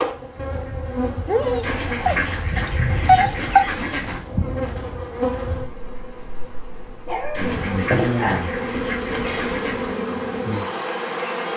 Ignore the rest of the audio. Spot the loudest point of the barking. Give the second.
3 s.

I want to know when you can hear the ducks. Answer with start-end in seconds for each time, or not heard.
1.6-4.2, 7.3-9.9.